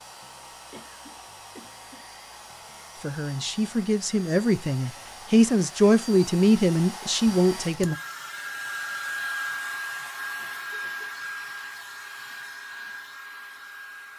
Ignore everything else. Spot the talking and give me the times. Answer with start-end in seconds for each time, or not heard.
3.0-8.0.